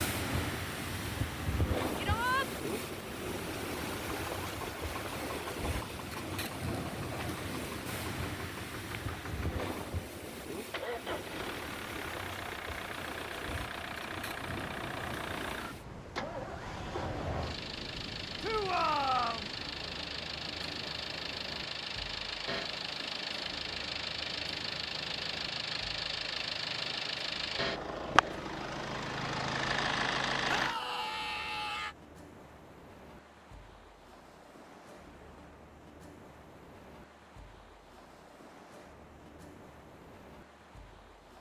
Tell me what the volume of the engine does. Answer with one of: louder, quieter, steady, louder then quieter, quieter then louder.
louder.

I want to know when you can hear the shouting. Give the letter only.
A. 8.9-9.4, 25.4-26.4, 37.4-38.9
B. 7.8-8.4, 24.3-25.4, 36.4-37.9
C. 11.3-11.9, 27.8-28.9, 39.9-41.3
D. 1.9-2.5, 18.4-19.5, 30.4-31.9
D.